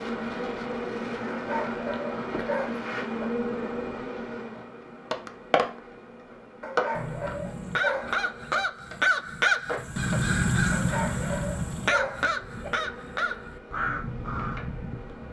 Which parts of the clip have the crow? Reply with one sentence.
The crow can be heard from 7.0 to 15.2 s.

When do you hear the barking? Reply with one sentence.
The barking can be heard from 1.2 to 3.2 s, from 6.6 to 8.6 s and from 10.7 to 12.7 s.